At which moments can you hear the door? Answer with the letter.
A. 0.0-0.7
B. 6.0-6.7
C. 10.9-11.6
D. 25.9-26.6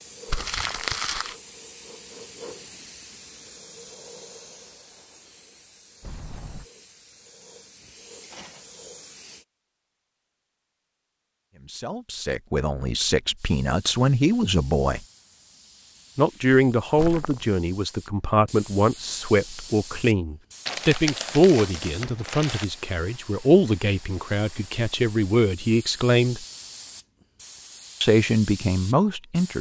B.